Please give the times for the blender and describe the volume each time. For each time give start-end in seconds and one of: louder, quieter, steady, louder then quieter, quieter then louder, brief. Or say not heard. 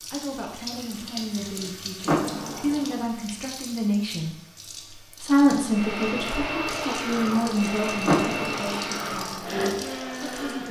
5.5-10.6 steady.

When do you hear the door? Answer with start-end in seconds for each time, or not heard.
2.0-3.0, 8.1-8.9.